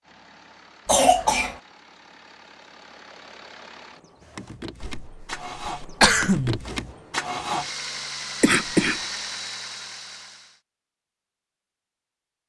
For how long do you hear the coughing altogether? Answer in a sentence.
The coughing can be heard for 3 seconds in total.